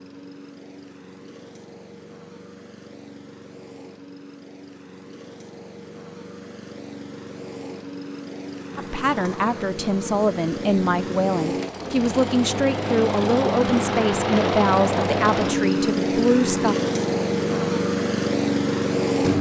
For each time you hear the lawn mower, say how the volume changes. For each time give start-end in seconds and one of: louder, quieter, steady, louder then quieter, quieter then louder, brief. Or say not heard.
0.0-19.3 louder.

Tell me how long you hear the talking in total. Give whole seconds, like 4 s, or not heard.
8 s.